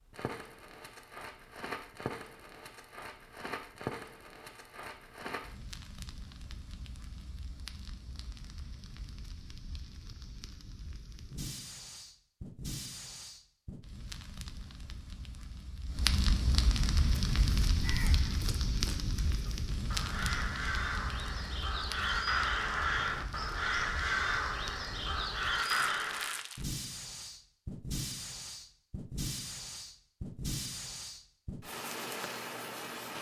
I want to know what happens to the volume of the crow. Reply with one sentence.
The loudness of the crow goes up.